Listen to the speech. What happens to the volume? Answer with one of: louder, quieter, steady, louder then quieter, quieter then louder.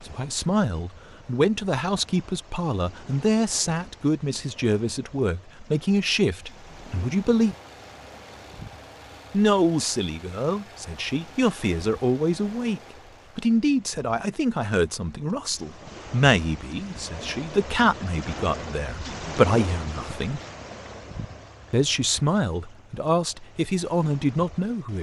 steady.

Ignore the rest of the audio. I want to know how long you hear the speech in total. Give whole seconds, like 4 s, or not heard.
22 s.